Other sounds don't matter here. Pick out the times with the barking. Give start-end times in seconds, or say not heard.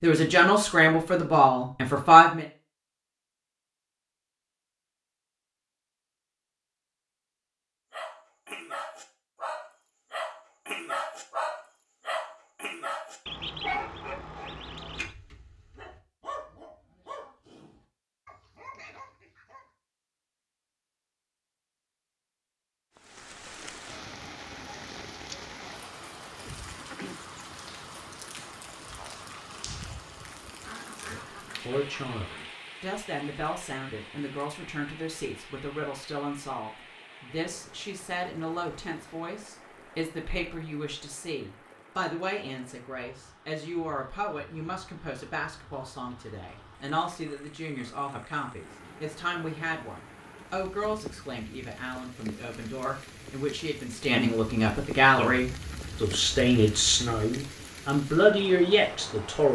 7.9-19.6.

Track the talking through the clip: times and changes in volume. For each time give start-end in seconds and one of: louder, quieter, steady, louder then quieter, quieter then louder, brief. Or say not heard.
0.0-2.5 brief
31.1-59.4 louder.